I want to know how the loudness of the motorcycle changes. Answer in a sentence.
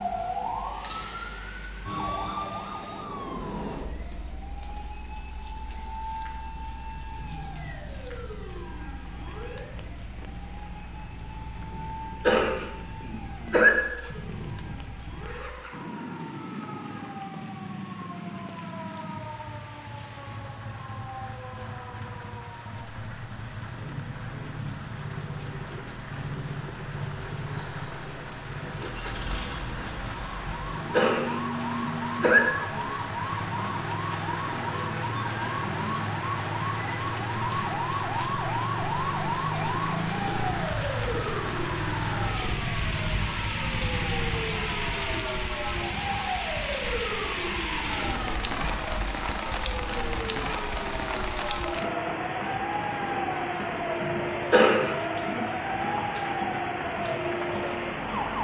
The loudness of the motorcycle goes up.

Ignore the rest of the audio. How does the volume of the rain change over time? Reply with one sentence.
The volume of the rain goes up.